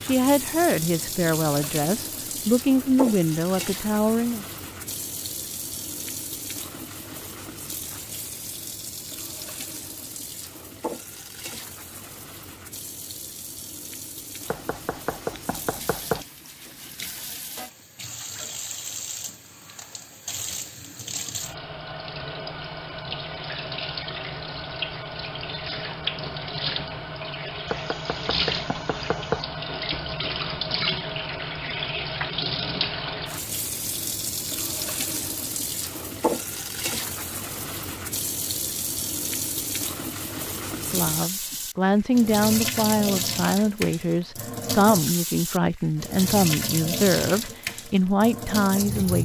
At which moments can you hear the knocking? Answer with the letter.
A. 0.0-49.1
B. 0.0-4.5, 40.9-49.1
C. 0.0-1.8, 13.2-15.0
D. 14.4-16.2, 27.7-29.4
D.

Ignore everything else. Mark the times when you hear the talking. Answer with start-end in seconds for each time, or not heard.
0.0-4.5, 40.9-49.1.